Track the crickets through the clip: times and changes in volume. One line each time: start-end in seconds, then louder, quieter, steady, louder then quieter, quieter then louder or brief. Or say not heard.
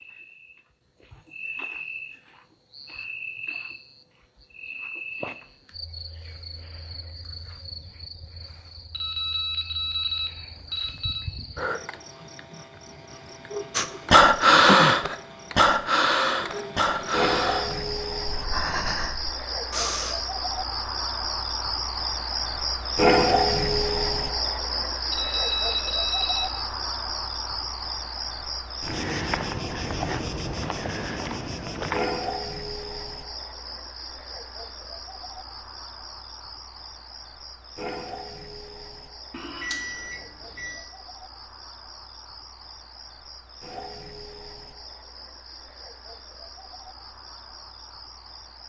0.0-48.6 louder then quieter.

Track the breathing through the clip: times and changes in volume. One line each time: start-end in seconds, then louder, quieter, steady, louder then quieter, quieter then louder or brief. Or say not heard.
13.8-20.1 quieter.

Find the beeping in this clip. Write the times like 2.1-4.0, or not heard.
8.9-11.2, 25.1-26.5, 39.4-40.8.